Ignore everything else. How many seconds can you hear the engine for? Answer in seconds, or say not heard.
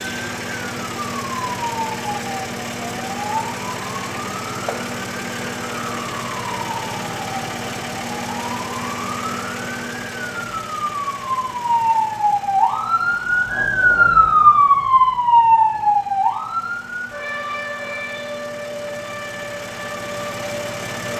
21 s.